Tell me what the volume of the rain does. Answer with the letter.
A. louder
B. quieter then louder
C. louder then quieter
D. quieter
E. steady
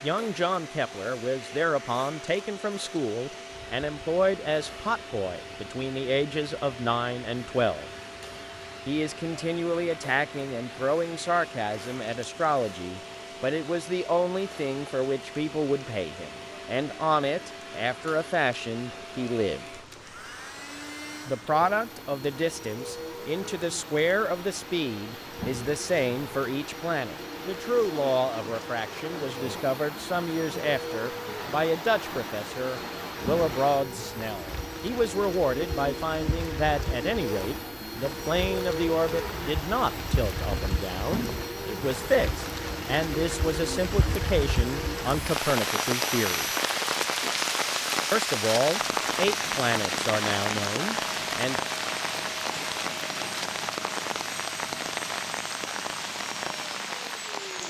A.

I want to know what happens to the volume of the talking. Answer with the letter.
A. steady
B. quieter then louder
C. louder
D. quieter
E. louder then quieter
A.